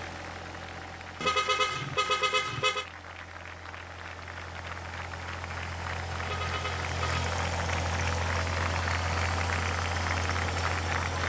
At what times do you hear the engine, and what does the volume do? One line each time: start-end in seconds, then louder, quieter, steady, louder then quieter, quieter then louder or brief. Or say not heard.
0.0-11.2 louder.